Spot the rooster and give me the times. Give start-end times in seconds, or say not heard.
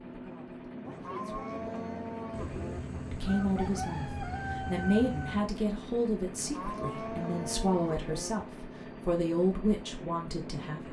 2.3-5.5.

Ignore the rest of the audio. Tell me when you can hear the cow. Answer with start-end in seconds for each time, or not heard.
0.8-2.8, 6.3-8.3.